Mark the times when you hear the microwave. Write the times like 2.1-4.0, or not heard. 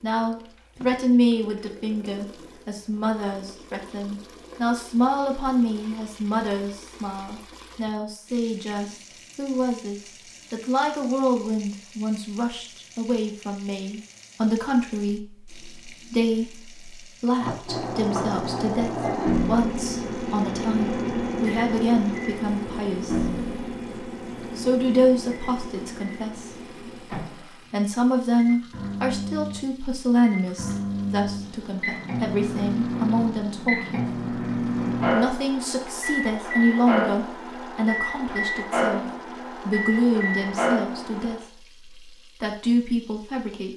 17.4-41.4.